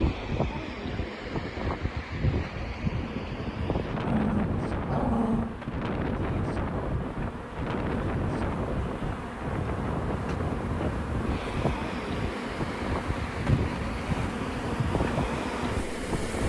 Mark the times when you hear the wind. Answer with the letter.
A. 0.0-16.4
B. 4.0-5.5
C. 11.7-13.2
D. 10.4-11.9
A.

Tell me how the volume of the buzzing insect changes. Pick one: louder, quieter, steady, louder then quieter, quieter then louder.
louder.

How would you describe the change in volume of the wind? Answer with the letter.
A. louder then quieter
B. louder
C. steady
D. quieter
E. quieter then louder
C.